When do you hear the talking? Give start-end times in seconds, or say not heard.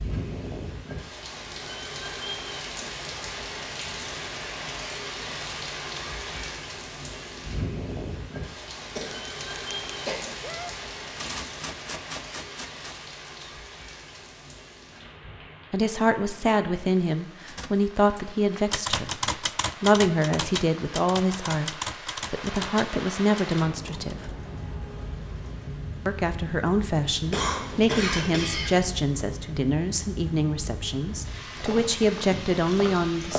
15.7-24.3, 26.1-33.3.